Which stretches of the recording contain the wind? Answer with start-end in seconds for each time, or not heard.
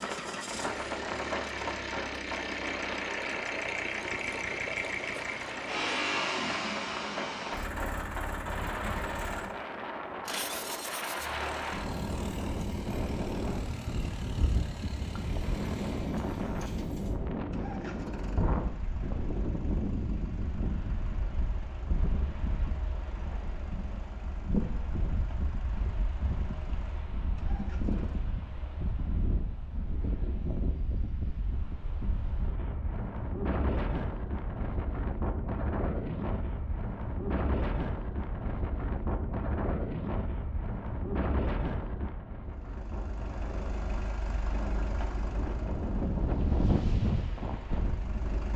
0.0-48.5.